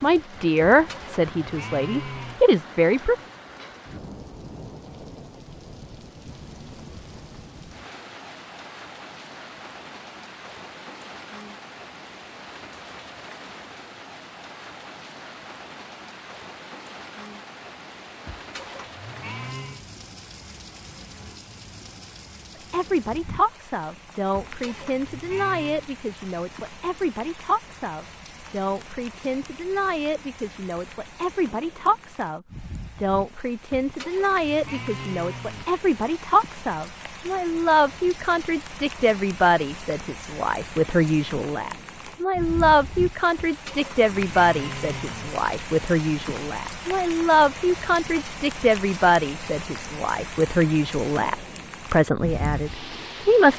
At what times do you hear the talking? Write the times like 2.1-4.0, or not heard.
0.0-3.1, 22.7-53.5.